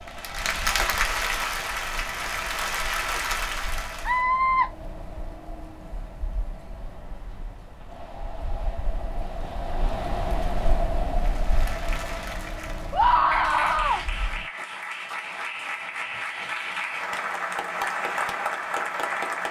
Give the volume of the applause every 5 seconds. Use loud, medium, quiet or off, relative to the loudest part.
loud, off, medium, loud.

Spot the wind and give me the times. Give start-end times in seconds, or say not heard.
0.0-14.5.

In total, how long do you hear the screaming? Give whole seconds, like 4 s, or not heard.
2 s.